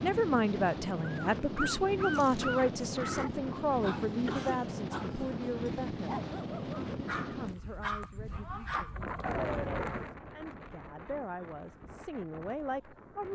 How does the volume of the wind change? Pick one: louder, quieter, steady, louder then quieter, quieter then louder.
quieter.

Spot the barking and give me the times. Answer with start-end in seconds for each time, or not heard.
0.9-10.2.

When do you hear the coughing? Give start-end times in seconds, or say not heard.
4.2-4.8.